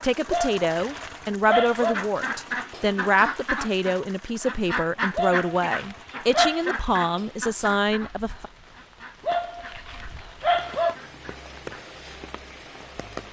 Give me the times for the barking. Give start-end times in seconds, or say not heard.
0.2-1.9, 5.2-6.8, 9.2-10.9.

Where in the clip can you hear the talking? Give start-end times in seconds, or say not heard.
0.0-8.5.